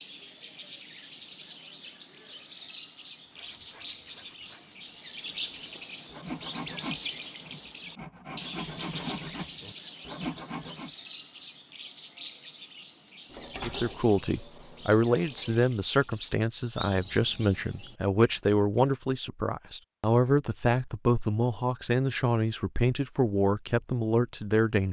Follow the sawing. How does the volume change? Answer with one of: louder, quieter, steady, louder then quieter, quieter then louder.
louder.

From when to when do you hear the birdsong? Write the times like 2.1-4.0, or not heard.
0.0-18.9.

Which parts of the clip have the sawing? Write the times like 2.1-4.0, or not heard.
3.2-10.9.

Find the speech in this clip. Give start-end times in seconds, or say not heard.
13.6-24.8.